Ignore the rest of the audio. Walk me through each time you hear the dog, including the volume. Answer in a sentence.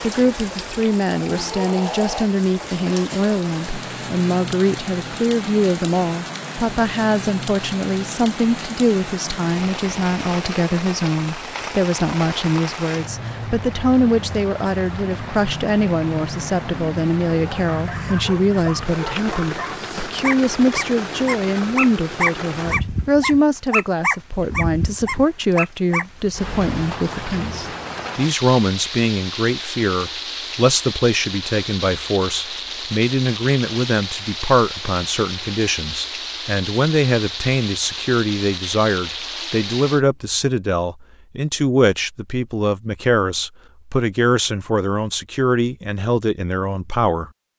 You can hear the dog from 17.4 to 26.1 s, getting louder.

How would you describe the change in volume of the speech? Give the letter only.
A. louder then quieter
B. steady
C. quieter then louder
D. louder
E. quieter
B.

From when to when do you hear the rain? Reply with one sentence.
You can hear the rain from 0.0 to 40.0 s.